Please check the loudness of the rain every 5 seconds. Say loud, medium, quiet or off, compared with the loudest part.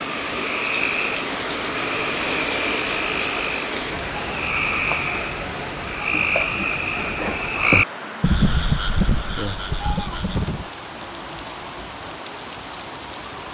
loud, medium, medium.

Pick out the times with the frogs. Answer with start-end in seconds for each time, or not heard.
0.0-10.7.